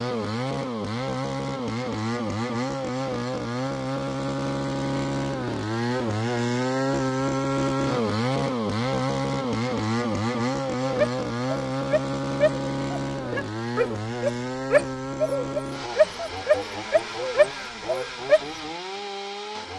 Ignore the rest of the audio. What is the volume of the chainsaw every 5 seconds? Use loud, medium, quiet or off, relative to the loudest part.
loud, loud, loud, medium.